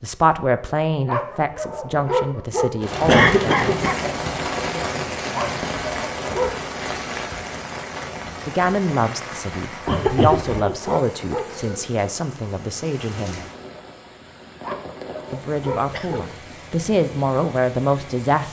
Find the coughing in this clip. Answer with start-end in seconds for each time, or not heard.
3.0-4.0, 9.8-10.8, 15.9-16.7.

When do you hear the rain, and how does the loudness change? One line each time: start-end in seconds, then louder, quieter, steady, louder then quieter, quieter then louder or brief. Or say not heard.
2.8-18.4 quieter.